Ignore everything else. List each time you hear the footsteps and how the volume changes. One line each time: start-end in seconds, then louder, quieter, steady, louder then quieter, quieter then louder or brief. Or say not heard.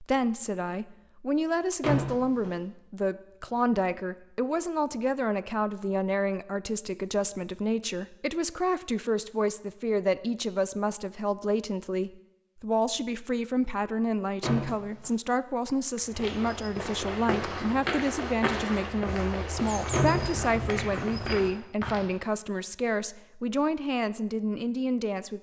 15.9-22.1 steady.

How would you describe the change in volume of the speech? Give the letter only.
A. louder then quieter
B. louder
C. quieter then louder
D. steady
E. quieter
D.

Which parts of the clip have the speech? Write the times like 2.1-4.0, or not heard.
0.0-25.3.